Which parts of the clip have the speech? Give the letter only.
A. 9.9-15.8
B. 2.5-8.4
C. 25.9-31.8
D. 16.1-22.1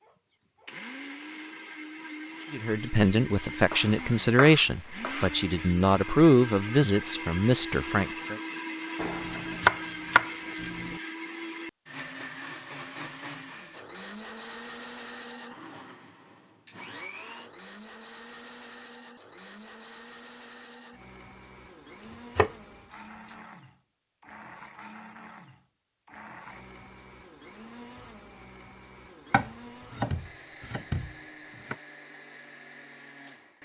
B.